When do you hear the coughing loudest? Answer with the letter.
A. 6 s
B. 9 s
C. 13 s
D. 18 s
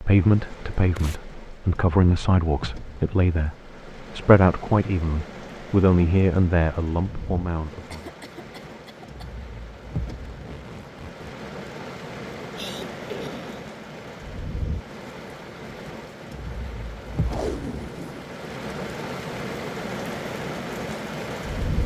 C.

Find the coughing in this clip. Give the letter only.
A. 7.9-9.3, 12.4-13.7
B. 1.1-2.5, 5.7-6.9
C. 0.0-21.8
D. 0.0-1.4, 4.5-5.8
A.